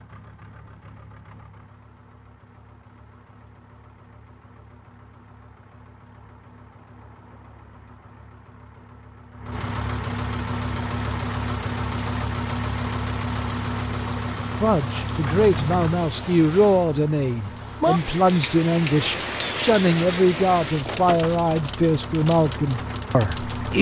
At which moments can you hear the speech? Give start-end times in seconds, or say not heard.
14.6-23.7.